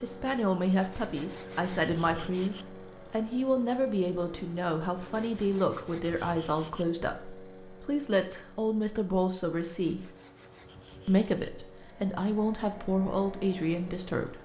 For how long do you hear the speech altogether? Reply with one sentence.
You can hear the speech for 13 seconds altogether.